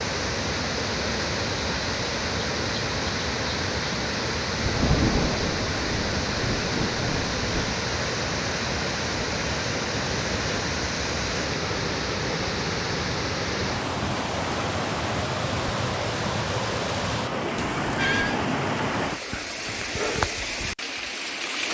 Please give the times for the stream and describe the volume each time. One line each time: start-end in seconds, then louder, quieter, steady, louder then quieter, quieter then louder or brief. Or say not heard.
0.0-21.6 steady.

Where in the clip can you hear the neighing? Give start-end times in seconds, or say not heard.
17.6-18.4.